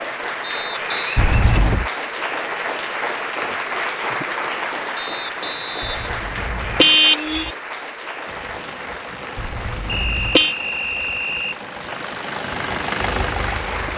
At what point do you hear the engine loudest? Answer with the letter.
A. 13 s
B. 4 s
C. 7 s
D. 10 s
A.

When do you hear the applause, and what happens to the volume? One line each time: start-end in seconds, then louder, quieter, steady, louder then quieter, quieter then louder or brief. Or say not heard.
0.0-13.9 quieter.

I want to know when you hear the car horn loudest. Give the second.
7 s.